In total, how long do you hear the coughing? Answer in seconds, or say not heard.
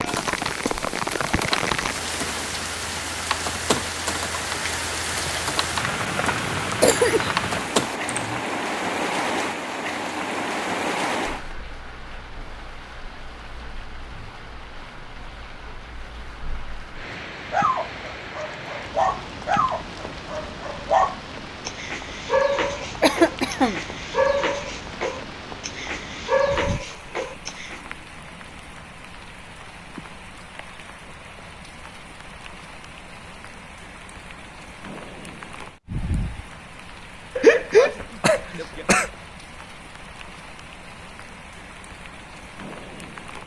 3 s.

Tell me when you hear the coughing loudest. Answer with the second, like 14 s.
38 s.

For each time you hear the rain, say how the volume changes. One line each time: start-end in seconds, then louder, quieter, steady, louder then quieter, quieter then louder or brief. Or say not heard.
0.0-43.4 quieter.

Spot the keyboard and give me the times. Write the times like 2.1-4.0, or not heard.
0.1-8.4.